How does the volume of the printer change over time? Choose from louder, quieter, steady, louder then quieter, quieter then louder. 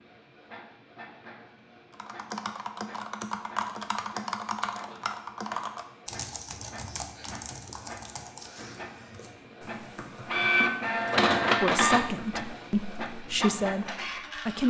louder.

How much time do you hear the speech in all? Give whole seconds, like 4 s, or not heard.
3 s.